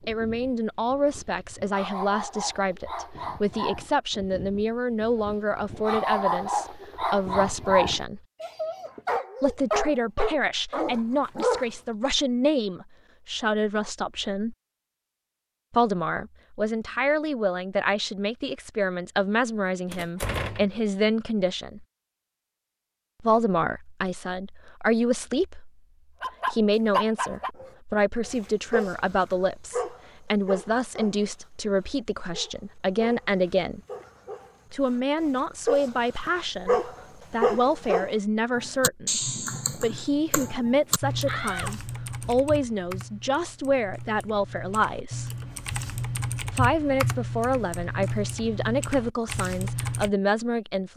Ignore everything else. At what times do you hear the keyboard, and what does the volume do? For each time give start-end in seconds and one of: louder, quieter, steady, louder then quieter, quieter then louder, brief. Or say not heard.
38.5-50.1 quieter then louder.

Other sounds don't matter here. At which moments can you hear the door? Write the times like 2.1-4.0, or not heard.
19.9-20.8, 41.2-42.5.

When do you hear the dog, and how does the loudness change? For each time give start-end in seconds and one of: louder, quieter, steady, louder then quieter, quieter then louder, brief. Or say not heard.
0.0-11.7 louder
26.2-38.1 quieter then louder.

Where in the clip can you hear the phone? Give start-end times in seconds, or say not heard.
not heard.